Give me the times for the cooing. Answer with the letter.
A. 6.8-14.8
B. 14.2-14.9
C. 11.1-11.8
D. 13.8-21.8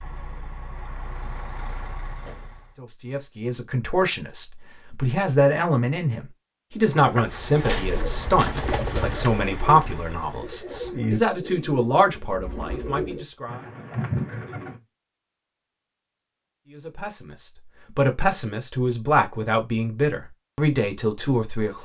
A.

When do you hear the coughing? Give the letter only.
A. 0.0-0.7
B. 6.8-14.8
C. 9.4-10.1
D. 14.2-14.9
D.